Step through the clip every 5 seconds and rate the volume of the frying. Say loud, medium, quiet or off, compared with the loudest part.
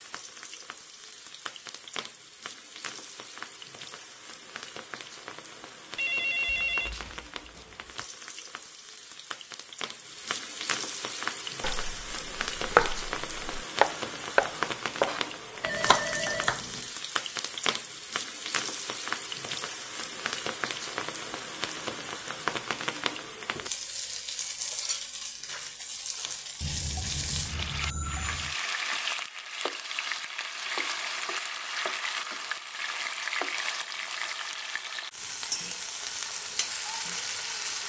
medium, medium, loud, loud, loud, loud, loud, loud.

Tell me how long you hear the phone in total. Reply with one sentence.
The phone can be heard for 5 seconds in total.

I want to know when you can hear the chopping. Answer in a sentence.
The chopping can be heard from 11.6 to 16.6 s.